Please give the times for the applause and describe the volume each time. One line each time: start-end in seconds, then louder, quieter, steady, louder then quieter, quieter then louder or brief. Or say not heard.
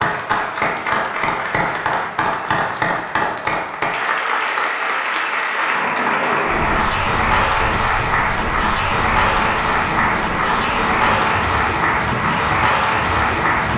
0.0-13.7 steady.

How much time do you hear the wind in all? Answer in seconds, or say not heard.
7 s.